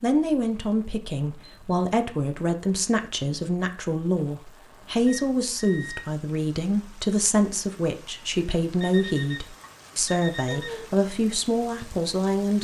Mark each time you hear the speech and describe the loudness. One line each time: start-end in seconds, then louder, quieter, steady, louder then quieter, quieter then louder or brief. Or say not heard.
0.0-12.5 steady.